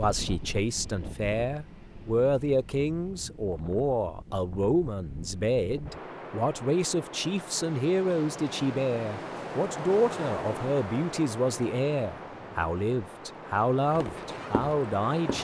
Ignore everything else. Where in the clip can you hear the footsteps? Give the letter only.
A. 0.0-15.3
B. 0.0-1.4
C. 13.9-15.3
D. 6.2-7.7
C.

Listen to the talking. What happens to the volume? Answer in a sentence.
The loudness of the talking stays about the same.